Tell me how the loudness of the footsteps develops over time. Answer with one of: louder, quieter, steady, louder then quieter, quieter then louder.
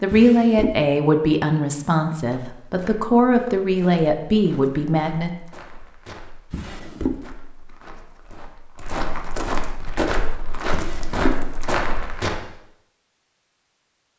louder.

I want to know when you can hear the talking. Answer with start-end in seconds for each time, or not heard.
0.0-5.3.